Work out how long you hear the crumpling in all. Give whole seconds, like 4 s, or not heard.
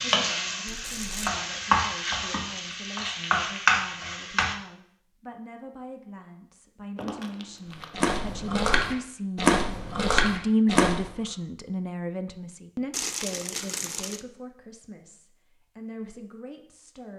3 s.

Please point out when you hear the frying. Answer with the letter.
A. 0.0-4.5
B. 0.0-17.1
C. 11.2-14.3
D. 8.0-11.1
A.